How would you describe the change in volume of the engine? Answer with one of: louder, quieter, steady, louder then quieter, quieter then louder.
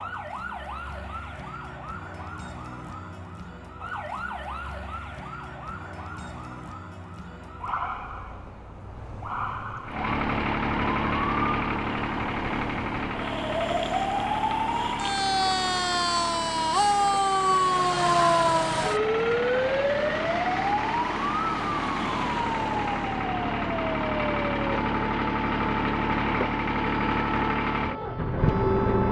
quieter then louder.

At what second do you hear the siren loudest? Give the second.
18 s.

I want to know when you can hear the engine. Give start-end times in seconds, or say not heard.
9.8-29.0.